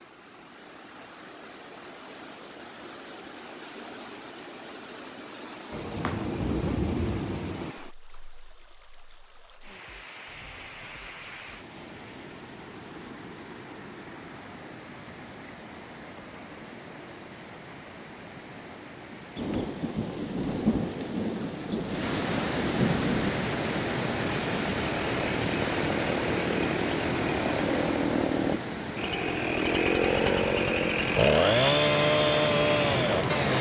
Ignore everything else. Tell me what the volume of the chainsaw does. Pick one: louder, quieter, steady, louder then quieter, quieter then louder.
louder.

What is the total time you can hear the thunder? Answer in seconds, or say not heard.
6 s.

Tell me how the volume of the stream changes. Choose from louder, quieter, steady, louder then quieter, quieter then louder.
louder.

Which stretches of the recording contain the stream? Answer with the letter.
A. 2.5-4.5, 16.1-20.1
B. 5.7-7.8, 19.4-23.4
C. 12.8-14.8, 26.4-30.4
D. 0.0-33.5
D.